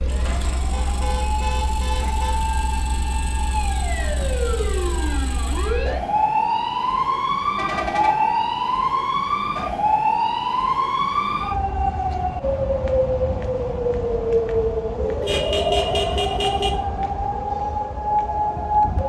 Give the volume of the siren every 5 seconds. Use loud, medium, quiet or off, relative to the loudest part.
medium, loud, loud, loud.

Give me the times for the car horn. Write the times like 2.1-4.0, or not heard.
0.7-2.4, 7.5-8.4, 15.2-16.7.